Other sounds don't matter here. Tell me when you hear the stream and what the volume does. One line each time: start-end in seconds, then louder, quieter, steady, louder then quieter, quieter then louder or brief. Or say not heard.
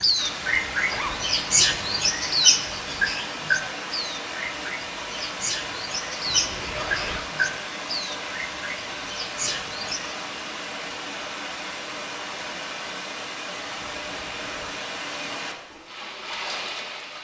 0.0-17.1 steady.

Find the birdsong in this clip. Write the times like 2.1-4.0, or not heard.
0.0-10.2.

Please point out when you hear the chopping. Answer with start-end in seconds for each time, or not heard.
not heard.